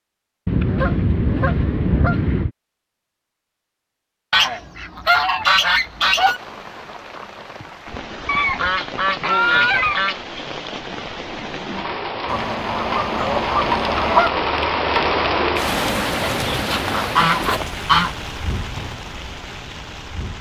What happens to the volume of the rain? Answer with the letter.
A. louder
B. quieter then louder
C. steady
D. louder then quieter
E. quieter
D.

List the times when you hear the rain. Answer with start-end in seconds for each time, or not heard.
5.8-20.3.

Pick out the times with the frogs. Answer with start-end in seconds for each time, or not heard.
not heard.